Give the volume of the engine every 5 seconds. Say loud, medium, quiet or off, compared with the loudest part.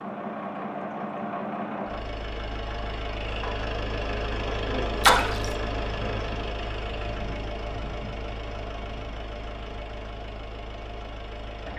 loud, loud, medium.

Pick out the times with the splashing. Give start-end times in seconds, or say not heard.
5.0-5.5.